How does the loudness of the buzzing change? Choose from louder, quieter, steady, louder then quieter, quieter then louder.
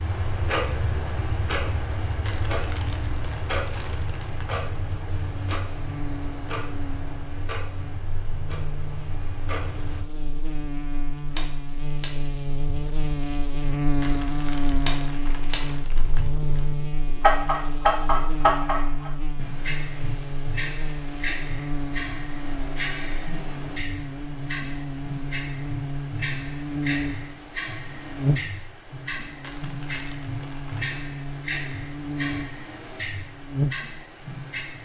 louder.